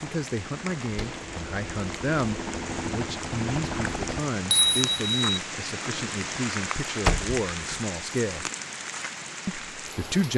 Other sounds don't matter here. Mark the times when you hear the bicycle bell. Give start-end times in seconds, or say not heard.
4.2-5.4.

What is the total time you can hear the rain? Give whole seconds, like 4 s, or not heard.
10 s.